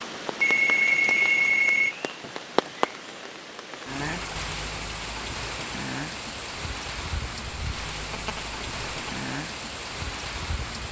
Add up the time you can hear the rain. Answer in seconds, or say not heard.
11 s.